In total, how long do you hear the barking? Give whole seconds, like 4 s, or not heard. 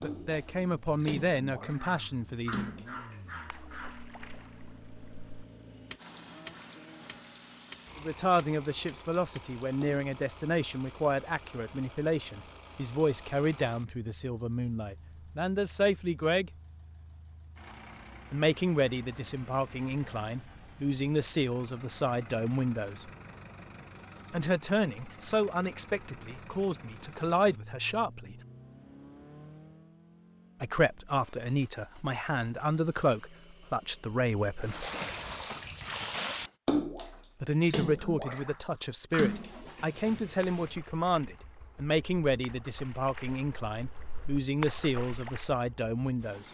3 s.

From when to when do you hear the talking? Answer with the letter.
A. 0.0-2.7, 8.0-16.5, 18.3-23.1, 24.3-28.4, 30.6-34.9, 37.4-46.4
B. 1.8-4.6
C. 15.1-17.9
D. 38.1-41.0
A.